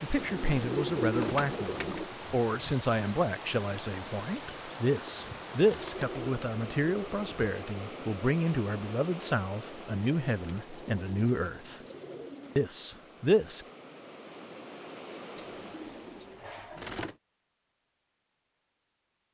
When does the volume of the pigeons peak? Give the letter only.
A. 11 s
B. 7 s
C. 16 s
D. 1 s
D.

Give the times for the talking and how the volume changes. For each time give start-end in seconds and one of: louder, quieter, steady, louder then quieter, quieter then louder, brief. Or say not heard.
0.0-11.8 steady
12.6-13.7 brief.